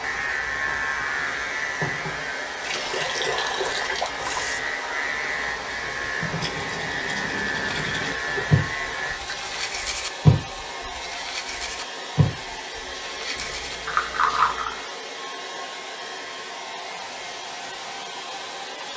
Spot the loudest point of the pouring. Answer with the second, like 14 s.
14 s.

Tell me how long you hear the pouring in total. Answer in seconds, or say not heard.
4 s.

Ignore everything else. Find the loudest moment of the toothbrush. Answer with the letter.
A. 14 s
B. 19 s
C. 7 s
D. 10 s
D.